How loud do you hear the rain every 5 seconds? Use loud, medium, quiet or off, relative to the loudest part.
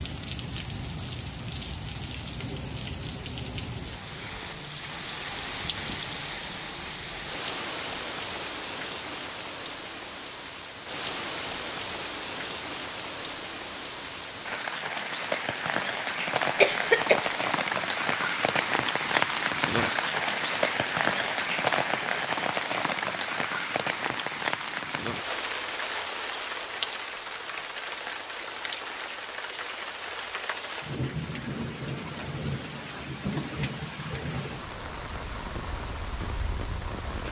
medium, medium, medium, loud, loud, medium, medium, medium.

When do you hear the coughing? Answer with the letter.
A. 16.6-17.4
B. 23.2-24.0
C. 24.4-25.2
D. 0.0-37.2
A.